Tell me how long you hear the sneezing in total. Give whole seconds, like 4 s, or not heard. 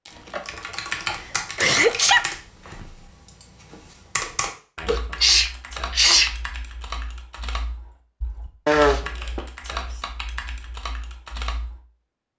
3 s.